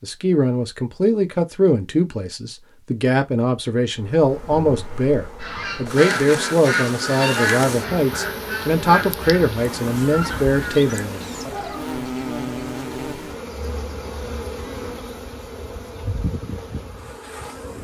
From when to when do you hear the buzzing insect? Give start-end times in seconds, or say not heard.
3.9-17.7.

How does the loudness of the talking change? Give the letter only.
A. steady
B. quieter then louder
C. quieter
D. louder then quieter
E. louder
A.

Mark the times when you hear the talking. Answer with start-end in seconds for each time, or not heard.
0.0-11.5.